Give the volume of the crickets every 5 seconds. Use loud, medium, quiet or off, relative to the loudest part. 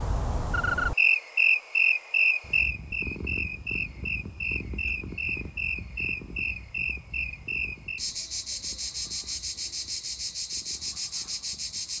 loud, medium, medium.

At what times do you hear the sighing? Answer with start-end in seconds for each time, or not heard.
not heard.